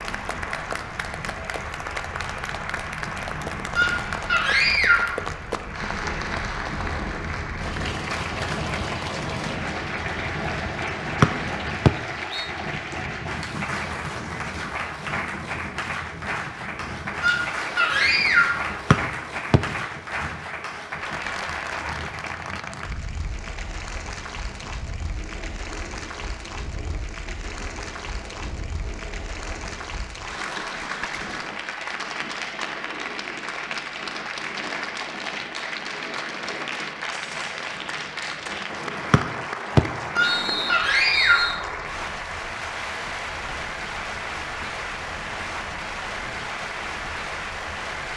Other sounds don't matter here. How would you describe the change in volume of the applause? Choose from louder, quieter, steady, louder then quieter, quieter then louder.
steady.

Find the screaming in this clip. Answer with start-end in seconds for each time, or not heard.
3.8-5.2, 17.2-18.6, 40.1-41.5.